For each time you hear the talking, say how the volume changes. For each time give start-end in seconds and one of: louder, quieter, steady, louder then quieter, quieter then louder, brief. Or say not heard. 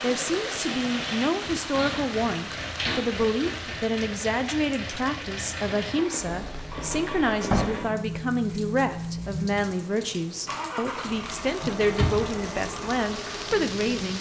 0.0-14.1 steady.